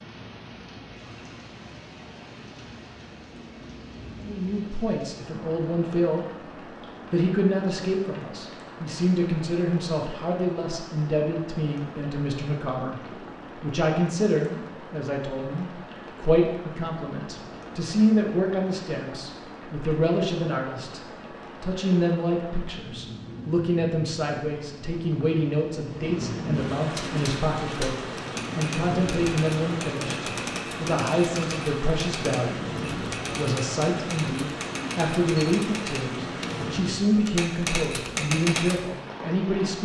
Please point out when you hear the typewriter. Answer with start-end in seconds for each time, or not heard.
26.9-38.8.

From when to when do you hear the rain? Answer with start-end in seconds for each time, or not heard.
0.0-39.8.